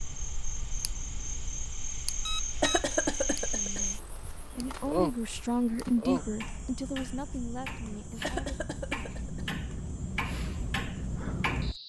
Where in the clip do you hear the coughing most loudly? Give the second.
3 s.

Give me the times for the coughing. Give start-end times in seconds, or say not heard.
2.6-3.9, 8.2-9.4.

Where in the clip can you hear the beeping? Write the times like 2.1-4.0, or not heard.
2.2-3.0.